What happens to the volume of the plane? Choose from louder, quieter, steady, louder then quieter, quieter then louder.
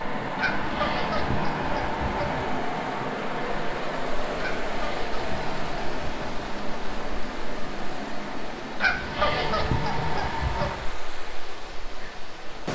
quieter.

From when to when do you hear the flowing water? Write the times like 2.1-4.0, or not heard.
0.0-12.6.